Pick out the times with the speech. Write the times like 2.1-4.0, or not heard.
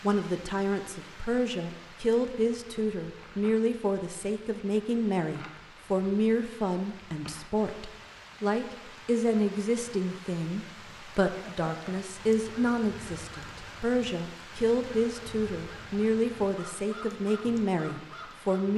0.0-18.7.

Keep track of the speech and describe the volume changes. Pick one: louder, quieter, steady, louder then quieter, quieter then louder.
steady.